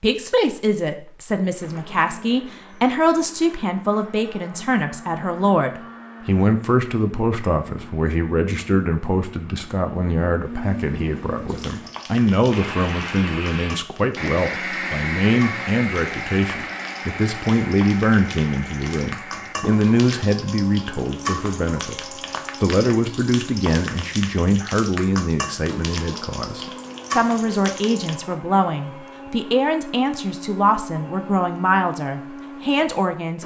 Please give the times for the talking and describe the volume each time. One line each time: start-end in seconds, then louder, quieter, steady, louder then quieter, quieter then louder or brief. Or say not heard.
0.0-33.4 steady.